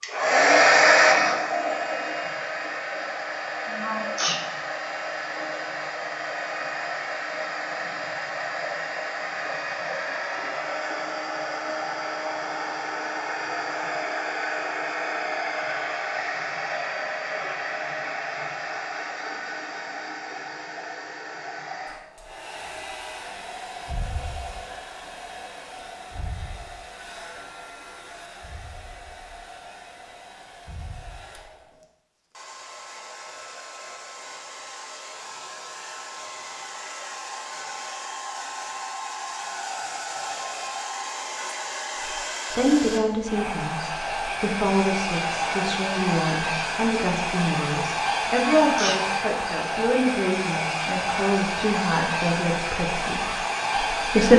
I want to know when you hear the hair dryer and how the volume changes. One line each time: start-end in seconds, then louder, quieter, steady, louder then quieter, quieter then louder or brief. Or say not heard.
0.0-54.3 quieter then louder.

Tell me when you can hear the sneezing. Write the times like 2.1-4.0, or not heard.
3.6-4.4, 48.3-49.0.